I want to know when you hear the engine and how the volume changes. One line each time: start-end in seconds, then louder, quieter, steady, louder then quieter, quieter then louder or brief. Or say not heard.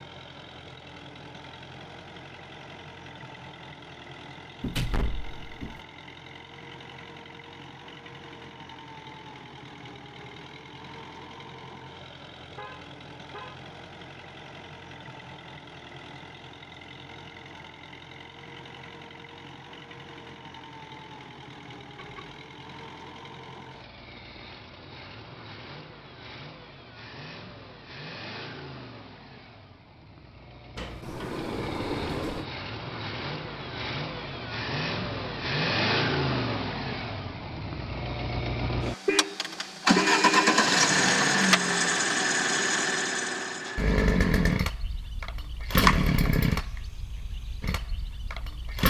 0.0-48.8 louder.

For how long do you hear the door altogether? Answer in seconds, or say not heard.
3 s.